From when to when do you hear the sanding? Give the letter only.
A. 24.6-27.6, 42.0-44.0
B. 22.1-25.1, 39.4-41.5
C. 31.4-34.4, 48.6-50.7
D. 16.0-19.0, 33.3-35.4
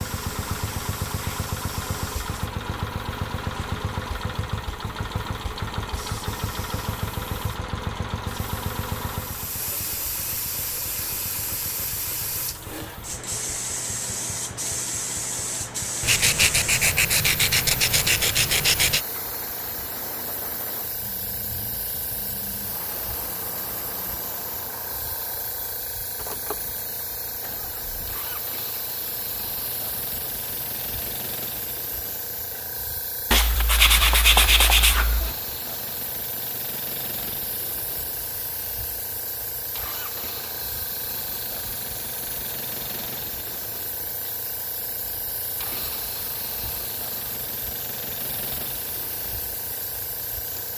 D.